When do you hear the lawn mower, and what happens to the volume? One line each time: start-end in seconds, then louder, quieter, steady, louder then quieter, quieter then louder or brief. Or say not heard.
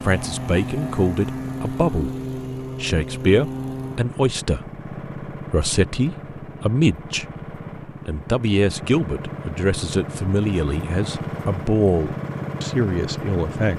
0.0-13.7 quieter then louder.